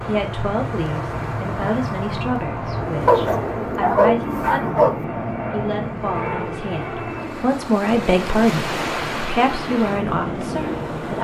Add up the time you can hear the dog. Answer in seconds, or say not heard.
2 s.